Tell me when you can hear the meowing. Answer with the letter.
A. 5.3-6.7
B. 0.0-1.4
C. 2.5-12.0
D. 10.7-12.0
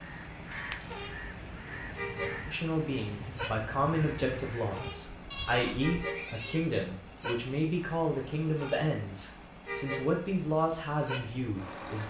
A.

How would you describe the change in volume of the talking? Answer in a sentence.
The loudness of the talking stays about the same.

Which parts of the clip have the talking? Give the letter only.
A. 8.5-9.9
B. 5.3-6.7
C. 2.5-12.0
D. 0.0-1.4
C.